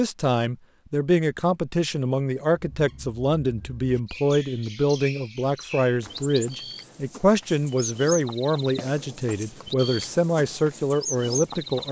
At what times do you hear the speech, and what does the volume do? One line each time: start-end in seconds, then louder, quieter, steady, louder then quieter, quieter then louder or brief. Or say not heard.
0.0-11.8 steady.